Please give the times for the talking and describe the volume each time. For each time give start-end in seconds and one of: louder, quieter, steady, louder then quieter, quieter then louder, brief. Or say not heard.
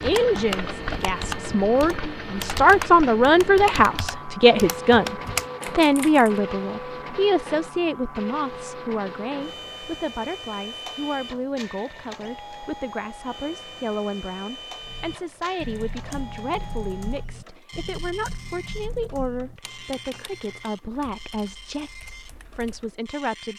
0.0-23.5 quieter.